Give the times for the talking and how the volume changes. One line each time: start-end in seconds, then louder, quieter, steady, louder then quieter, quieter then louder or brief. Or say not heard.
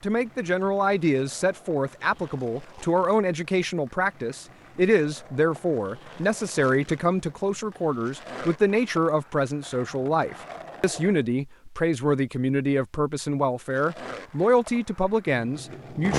0.0-16.1 steady.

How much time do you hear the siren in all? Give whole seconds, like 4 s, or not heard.
not heard.